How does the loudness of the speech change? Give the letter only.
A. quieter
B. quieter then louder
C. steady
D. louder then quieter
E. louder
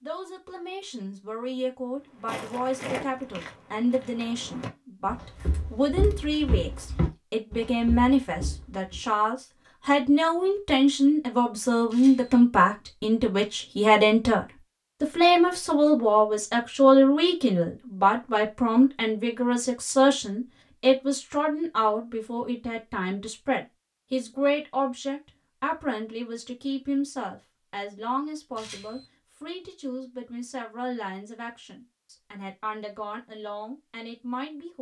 D.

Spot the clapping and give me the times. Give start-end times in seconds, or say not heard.
not heard.